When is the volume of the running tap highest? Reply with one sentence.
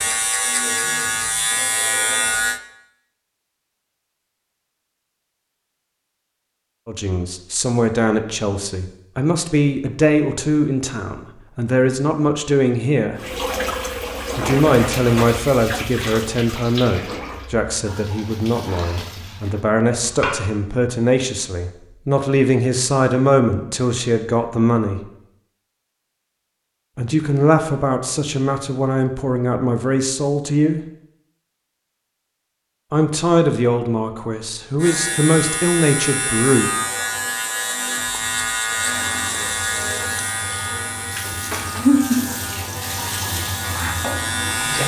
The loudest moment of the running tap is at 42 seconds.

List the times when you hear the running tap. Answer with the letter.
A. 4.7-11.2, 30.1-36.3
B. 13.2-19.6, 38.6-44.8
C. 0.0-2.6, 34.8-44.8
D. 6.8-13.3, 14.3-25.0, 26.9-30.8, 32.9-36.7
B.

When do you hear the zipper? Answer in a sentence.
You can hear the zipper from 19.9 to 20.4 s.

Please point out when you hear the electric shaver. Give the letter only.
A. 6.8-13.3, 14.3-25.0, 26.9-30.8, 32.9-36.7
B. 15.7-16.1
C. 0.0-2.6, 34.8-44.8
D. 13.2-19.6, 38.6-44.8
C.